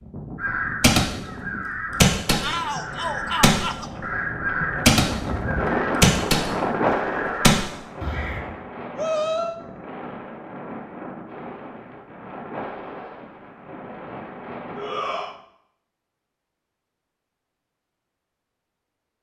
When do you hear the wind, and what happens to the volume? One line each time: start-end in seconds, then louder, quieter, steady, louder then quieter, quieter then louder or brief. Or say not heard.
0.0-15.4 louder then quieter.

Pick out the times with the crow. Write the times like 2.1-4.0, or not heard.
0.4-8.4.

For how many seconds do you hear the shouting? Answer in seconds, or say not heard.
3 s.